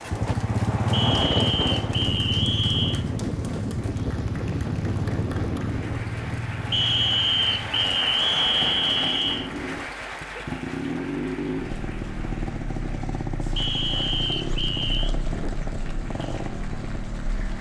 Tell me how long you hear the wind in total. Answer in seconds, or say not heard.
10 s.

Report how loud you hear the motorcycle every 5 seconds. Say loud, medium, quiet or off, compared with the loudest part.
loud, medium, loud, medium.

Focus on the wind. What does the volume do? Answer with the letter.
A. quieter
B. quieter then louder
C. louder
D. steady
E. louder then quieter
A.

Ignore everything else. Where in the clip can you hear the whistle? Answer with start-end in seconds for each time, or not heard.
0.9-3.0, 6.7-9.5, 13.6-15.2.